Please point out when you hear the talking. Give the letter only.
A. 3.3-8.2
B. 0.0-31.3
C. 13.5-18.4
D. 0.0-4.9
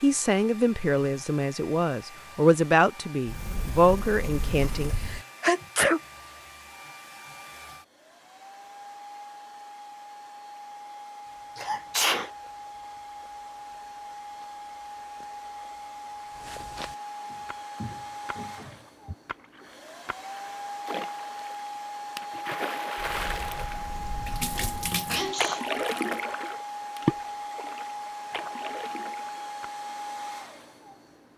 D.